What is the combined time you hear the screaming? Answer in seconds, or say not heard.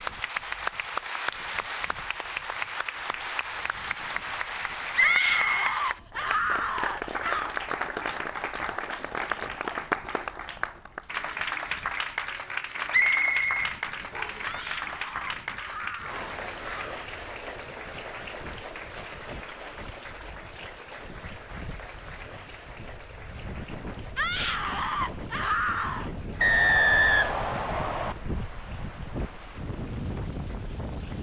7 s.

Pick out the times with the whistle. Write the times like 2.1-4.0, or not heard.
4.9-5.7, 12.9-14.5, 26.4-28.1.